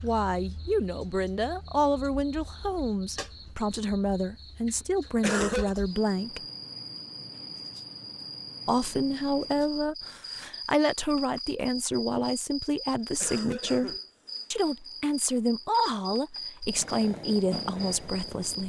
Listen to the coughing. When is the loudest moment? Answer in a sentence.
The volume of the coughing peaks at 5 seconds.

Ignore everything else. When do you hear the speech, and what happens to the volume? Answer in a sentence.
The speech can be heard from 0.0 to 6.5 s, at a steady volume; and from 8.7 to 18.6 s, at a steady volume.